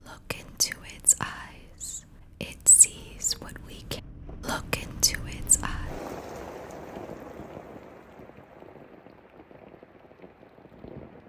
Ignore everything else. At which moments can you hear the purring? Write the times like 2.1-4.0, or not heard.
not heard.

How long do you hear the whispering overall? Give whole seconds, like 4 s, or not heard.
6 s.